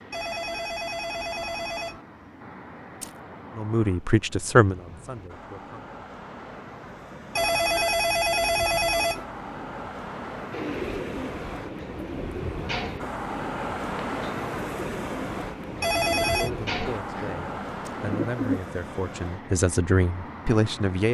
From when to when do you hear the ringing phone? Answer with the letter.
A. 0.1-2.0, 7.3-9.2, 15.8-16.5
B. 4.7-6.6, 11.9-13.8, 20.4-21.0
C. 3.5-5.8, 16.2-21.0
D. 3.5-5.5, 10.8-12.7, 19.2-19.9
A.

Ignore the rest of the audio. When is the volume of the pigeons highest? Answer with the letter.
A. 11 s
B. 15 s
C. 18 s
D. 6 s
C.